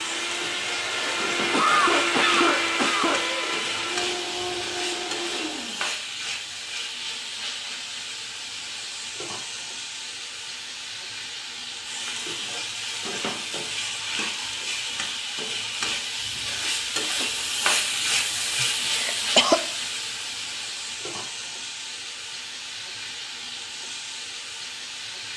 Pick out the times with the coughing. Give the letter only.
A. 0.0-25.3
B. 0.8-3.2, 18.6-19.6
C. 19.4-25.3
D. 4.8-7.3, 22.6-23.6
B.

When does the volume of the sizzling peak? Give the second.
18 s.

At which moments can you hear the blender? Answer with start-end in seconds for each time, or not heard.
0.0-5.8.